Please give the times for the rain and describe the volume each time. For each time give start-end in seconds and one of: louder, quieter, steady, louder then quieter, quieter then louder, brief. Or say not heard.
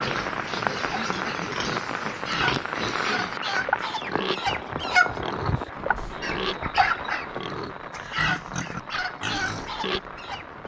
0.0-10.6 quieter.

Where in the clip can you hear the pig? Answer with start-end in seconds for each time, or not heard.
0.0-10.0.